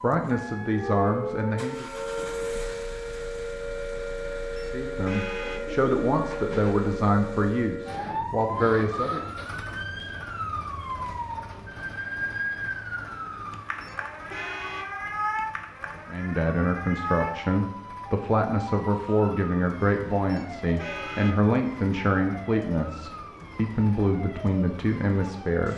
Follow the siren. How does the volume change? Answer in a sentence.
The loudness of the siren goes down.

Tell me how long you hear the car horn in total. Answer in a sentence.
The car horn can be heard for 3 seconds in total.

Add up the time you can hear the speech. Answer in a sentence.
You can hear the speech for 16 seconds altogether.